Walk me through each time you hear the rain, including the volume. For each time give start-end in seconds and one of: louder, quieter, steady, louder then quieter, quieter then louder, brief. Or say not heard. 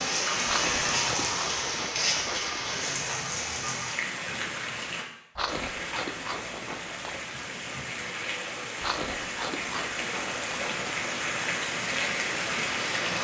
0.0-13.2 quieter then louder.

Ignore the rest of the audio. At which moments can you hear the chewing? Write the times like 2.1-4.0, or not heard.
0.5-2.8, 5.3-7.2, 8.8-11.1.